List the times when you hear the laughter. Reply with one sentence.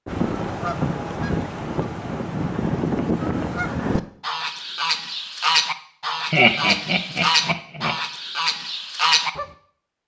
You can hear the laughter from 6.3 to 8.0 s.